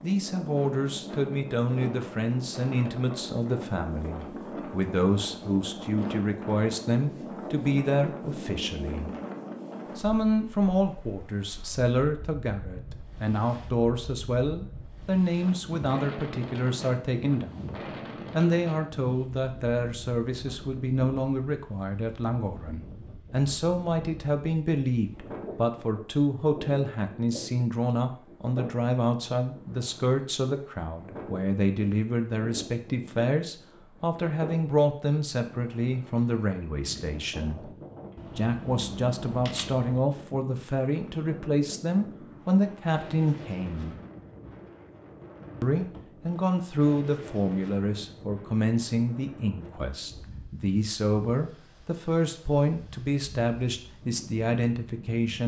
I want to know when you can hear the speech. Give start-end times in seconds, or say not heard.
0.0-9.1, 9.9-37.8, 38.4-44.0, 45.6-55.4.